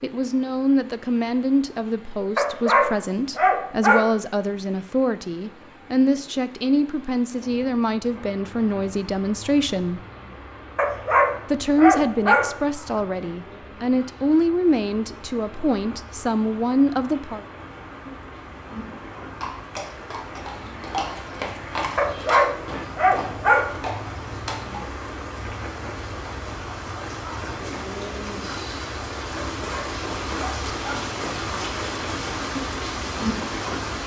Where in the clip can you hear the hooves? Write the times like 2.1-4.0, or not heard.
19.4-24.9.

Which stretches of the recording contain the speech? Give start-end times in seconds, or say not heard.
0.0-10.0, 11.5-17.4.